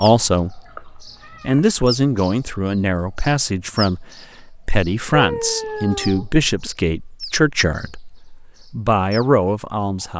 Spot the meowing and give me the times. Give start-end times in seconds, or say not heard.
0.1-1.8, 5.1-6.7.